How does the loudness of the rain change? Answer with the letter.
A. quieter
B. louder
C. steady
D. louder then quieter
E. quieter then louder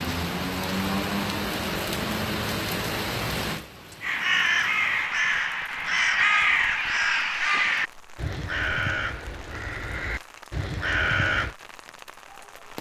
A.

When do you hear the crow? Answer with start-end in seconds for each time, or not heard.
4.0-11.6.